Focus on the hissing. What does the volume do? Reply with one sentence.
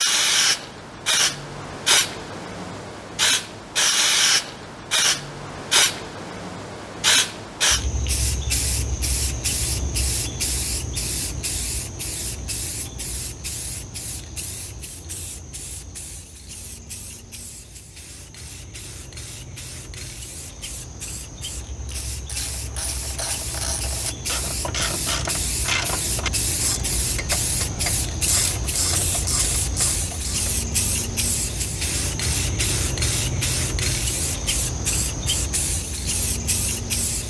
The loudness of the hissing goes down, then up.